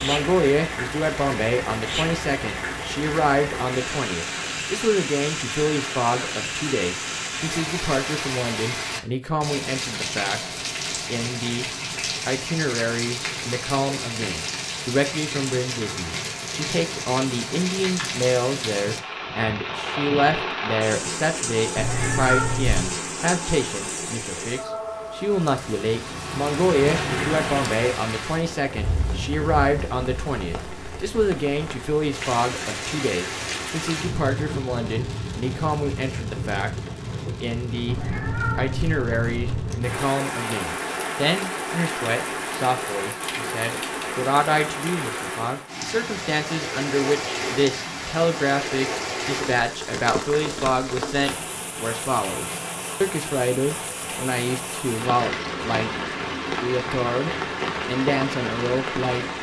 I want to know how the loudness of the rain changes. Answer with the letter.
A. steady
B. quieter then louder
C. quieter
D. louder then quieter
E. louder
A.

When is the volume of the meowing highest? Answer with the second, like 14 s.
22 s.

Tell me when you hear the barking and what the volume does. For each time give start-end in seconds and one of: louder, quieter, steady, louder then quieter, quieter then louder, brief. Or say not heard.
not heard.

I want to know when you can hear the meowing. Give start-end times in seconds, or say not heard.
21.8-22.9, 37.9-39.8.